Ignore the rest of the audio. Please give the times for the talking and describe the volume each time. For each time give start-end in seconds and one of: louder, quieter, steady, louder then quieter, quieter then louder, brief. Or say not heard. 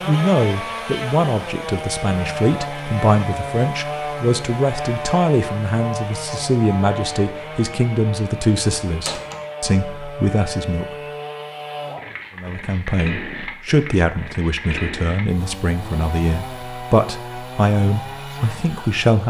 0.1-10.8 steady
12.3-19.2 steady.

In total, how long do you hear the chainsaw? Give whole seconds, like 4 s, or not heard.
19 s.